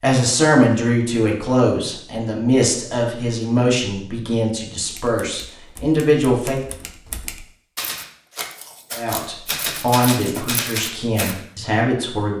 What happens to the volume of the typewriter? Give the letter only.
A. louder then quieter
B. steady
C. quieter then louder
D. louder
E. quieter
D.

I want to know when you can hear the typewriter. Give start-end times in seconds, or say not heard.
4.8-11.4.